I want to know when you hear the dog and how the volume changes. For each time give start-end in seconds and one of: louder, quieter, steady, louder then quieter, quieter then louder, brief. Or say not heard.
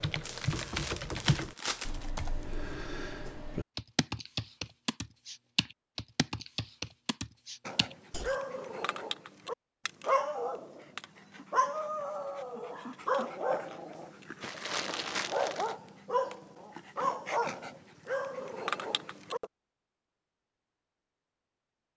7.7-19.5 steady.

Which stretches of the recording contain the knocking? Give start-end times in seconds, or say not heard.
0.5-1.6.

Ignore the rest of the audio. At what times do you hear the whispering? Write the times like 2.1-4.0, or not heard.
not heard.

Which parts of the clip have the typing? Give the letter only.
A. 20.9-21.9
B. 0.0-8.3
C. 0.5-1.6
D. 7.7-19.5
B.